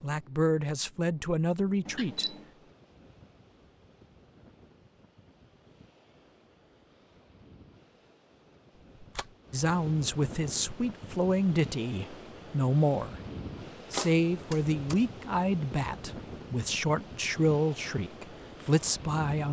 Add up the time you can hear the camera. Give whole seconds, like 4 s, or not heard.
2 s.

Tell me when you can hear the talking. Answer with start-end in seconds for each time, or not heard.
0.0-2.3, 9.5-13.2, 13.9-19.4.